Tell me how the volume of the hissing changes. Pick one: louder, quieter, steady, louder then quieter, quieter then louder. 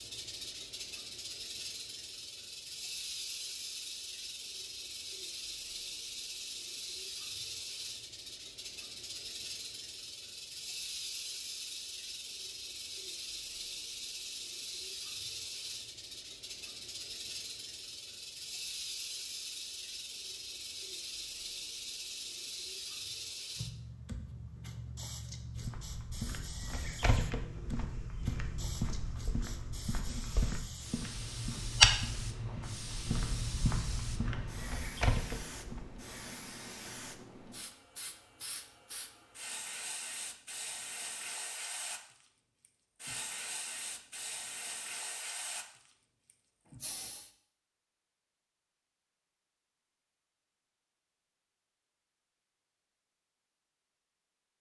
steady.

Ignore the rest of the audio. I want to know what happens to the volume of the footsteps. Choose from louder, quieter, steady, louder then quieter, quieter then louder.
louder then quieter.